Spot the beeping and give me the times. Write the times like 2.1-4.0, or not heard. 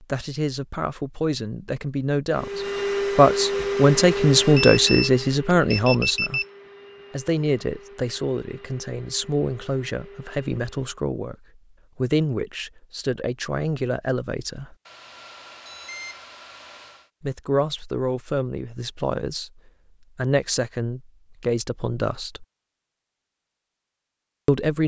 4.5-6.5, 14.8-17.1.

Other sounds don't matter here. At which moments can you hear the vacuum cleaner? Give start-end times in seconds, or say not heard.
2.3-11.0.